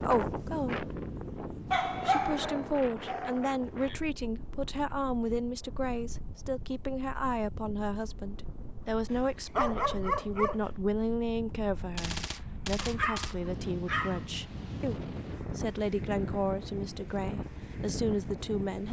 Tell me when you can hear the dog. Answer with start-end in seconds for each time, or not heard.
1.7-3.5, 9.1-10.7, 12.8-14.2.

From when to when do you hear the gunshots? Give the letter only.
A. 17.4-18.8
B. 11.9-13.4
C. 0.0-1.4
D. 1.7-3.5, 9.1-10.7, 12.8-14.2
B.